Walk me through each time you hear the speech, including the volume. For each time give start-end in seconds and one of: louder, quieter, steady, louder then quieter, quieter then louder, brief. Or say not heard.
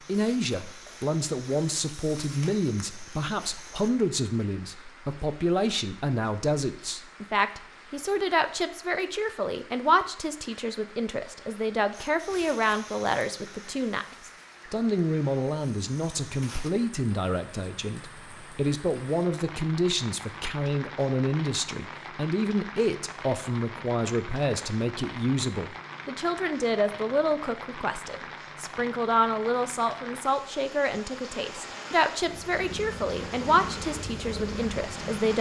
0.1-35.3 steady.